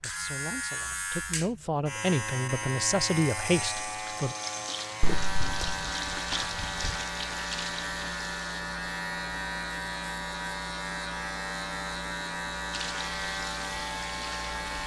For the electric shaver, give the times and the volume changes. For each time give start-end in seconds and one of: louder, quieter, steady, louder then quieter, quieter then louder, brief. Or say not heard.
0.0-14.8 steady.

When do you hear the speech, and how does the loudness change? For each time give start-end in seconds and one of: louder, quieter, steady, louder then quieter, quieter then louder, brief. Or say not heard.
0.0-4.3 louder.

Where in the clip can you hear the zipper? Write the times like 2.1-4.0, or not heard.
5.0-5.8.